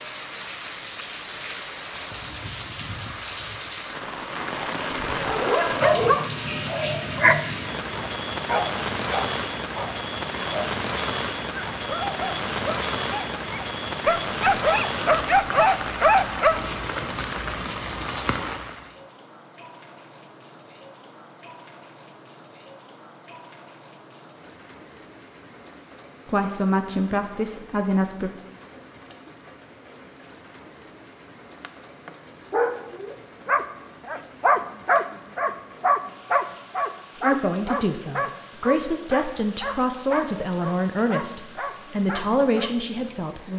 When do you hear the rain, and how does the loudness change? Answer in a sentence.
The rain can be heard from 0.0 to 43.5 s, getting quieter.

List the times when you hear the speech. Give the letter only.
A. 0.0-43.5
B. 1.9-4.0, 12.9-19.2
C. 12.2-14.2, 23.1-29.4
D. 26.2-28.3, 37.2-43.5
D.